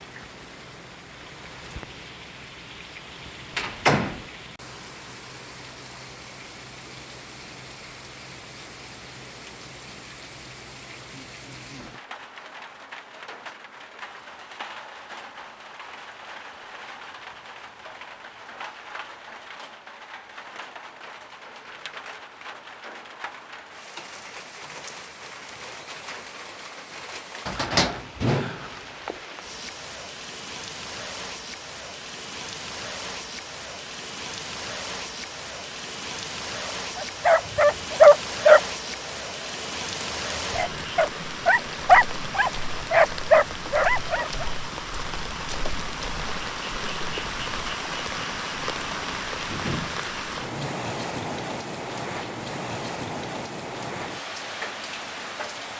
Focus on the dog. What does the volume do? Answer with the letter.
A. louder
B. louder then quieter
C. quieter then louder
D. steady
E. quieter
C.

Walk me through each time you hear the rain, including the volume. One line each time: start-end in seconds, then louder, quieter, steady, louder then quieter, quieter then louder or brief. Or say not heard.
0.0-55.7 louder.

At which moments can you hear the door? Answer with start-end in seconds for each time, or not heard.
3.5-4.2, 27.4-29.1, 49.4-50.7.